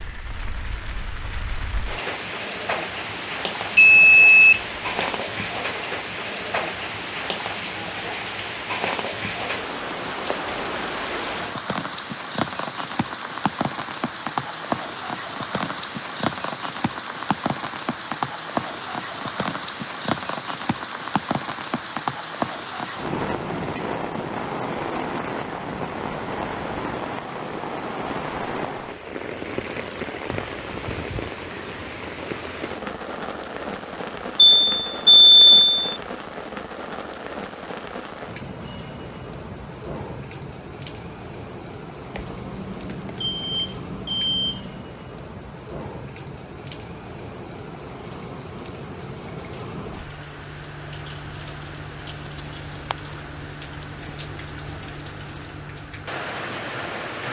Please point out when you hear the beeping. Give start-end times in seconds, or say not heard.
3.8-5.0, 34.4-36.0, 42.1-44.8.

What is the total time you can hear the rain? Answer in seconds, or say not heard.
57 s.